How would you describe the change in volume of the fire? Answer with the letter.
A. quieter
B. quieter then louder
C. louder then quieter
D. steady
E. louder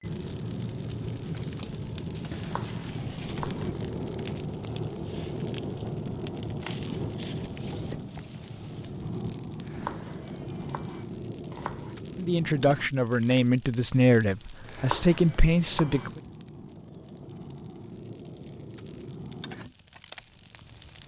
A.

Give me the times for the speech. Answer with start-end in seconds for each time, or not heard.
12.2-16.2.